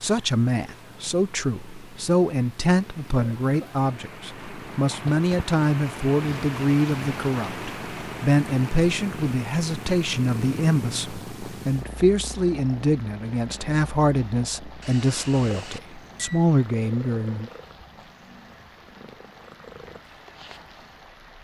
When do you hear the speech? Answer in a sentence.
The speech can be heard from 0.0 to 17.5 s.